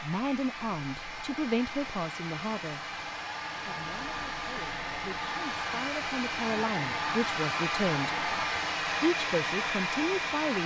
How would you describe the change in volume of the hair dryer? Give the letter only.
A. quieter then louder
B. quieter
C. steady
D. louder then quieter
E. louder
E.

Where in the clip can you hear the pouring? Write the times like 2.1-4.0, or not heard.
not heard.